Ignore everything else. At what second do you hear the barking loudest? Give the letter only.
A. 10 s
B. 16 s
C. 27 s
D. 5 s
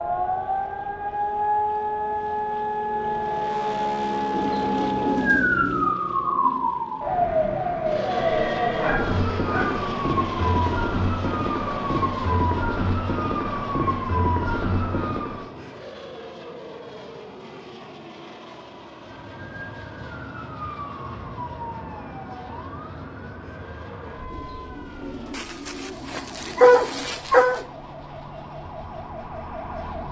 C.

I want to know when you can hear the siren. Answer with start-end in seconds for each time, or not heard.
0.0-15.5, 18.9-30.0.